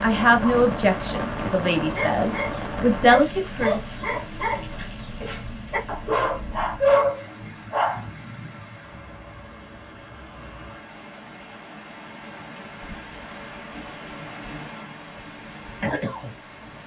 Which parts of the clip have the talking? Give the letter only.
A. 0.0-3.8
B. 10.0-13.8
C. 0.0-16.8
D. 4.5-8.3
A.